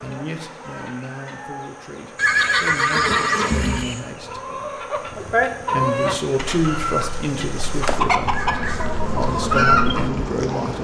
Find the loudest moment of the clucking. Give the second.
10 s.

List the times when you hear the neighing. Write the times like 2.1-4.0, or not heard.
2.1-4.0, 8.3-9.0.